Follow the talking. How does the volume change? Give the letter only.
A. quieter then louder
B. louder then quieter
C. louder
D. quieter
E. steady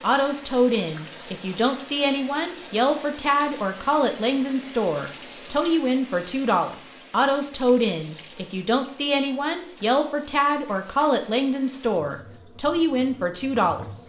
E.